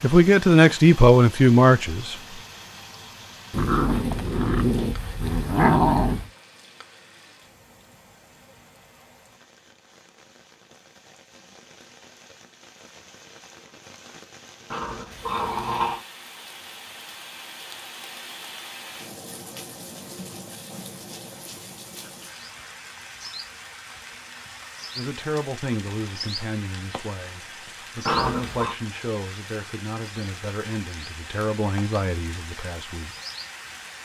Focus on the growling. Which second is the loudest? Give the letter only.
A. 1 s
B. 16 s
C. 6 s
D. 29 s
C.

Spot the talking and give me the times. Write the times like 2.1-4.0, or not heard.
0.0-2.1, 24.9-33.1.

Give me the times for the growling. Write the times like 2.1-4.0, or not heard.
3.5-6.2, 14.7-16.1, 28.1-28.8.